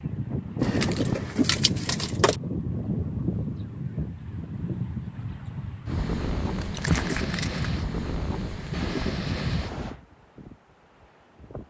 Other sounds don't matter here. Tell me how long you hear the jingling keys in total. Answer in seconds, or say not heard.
3 s.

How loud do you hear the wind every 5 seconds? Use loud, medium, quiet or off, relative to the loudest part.
loud, loud, quiet.